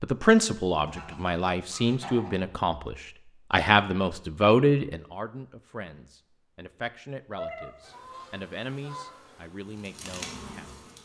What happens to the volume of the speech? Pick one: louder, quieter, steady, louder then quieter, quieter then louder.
quieter.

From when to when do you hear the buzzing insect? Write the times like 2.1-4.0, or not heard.
7.8-11.0.